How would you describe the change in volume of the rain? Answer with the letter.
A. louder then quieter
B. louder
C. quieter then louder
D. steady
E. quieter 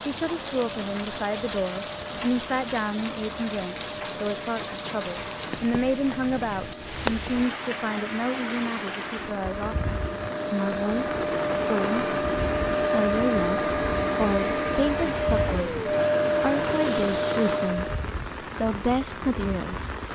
D.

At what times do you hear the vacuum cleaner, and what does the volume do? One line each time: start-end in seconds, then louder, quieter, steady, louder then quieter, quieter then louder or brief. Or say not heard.
0.2-18.1 louder.